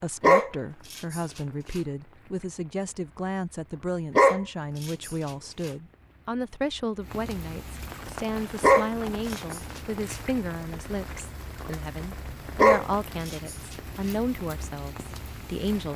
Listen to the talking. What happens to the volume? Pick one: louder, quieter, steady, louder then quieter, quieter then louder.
steady.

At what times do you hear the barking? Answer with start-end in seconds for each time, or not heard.
0.2-1.2, 4.2-5.7, 8.6-9.6, 12.6-13.6.